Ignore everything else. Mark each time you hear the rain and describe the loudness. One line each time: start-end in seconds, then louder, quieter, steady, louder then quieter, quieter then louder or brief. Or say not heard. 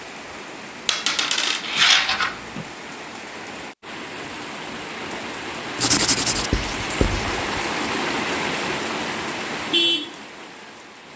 0.0-11.1 louder.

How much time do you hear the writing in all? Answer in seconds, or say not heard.
2 s.